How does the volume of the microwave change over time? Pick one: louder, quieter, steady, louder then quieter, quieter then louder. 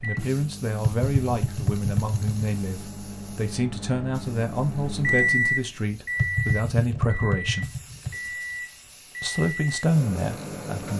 louder then quieter.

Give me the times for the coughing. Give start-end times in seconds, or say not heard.
not heard.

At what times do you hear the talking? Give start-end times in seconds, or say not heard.
0.0-7.7, 9.2-10.9.